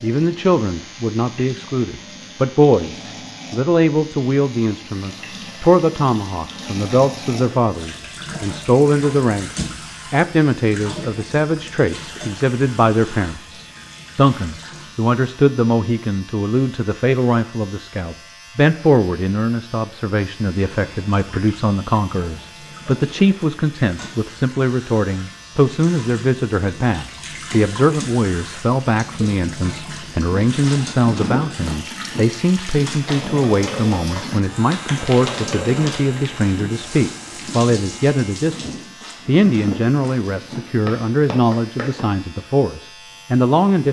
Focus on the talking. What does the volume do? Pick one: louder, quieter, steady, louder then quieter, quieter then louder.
steady.